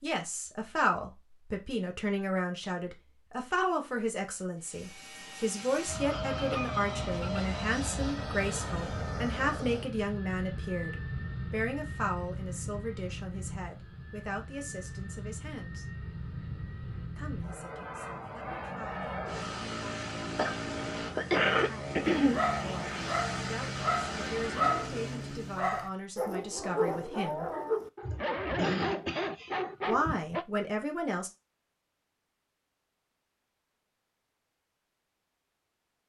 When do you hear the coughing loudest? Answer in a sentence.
The loudest moment of the coughing is at 21 seconds.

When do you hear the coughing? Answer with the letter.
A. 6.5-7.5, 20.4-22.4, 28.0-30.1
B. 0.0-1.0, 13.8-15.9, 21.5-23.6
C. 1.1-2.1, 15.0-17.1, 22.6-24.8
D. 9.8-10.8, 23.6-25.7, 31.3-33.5
A.